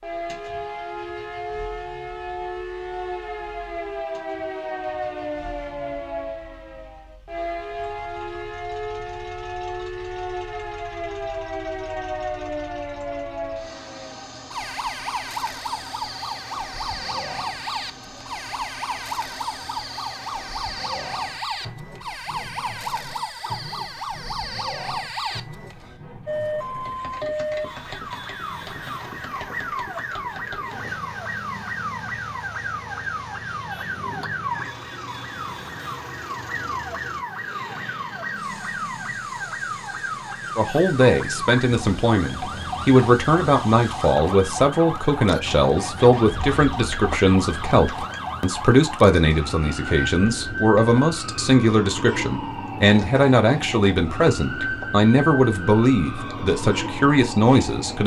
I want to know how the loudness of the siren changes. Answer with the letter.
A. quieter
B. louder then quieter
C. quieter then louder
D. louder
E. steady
E.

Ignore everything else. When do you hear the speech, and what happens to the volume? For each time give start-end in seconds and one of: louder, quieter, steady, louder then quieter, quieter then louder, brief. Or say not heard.
40.5-58.0 steady.